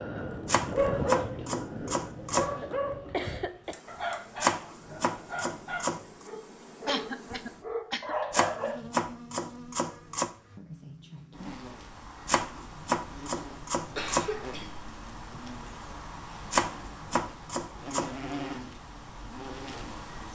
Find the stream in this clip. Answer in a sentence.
The stream can't be heard in this clip.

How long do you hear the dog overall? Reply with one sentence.
The dog can be heard for 9 seconds in total.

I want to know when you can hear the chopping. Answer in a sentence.
You can hear the chopping from 0.5 to 2.5 s, from 4.4 to 6.0 s, from 8.3 to 10.3 s, from 12.2 to 14.3 s and from 16.5 to 18.1 s.